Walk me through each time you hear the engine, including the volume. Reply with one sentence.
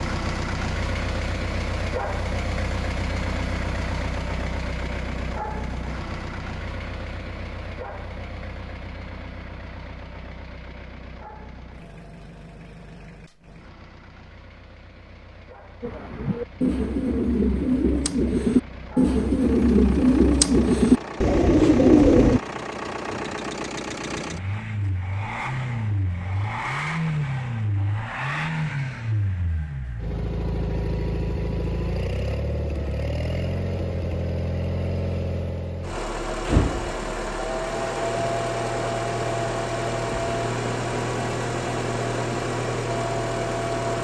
You can hear the engine from 0.0 to 44.0 s, getting quieter then louder.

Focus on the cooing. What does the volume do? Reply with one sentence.
The volume of the cooing goes up.